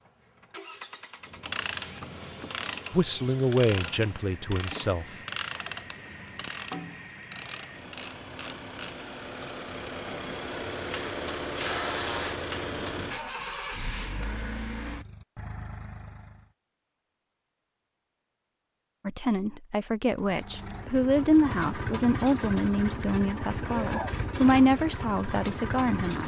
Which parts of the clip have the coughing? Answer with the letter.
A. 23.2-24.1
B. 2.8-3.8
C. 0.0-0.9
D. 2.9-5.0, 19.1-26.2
A.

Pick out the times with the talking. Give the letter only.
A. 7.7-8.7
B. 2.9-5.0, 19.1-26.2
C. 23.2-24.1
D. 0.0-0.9
B.